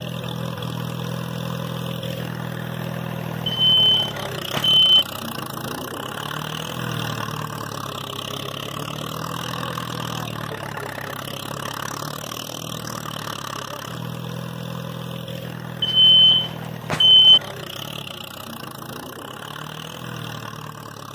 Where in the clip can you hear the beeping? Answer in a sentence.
You can hear the beeping from 3.5 to 5.0 s and from 15.8 to 17.4 s.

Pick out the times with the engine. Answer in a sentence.
You can hear the engine from 0.0 to 21.1 s.